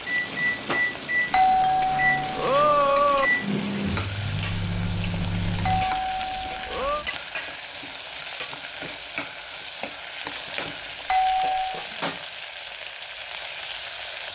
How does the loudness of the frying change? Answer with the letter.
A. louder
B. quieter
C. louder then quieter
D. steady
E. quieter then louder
D.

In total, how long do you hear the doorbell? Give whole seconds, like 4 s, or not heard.
4 s.